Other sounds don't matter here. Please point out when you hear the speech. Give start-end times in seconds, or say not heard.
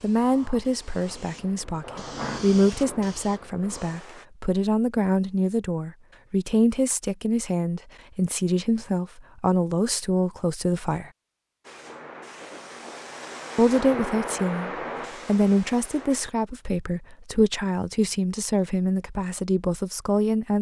0.0-11.1, 13.6-20.5.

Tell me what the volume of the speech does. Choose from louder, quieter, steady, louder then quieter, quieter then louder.
steady.